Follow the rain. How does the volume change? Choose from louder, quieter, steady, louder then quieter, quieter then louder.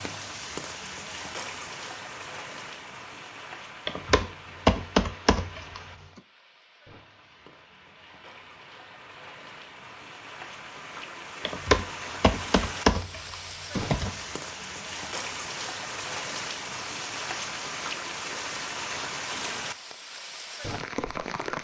quieter then louder.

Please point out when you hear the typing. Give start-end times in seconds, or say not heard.
3.9-5.8, 11.4-14.2.